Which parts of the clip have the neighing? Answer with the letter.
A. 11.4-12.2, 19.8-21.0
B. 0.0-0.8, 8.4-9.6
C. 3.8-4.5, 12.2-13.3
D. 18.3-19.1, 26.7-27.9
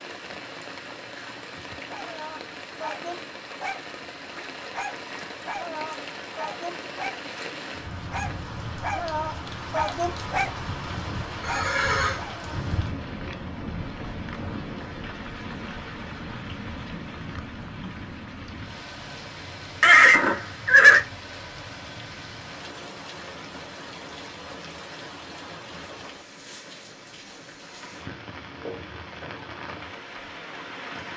A.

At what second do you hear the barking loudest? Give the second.
10 s.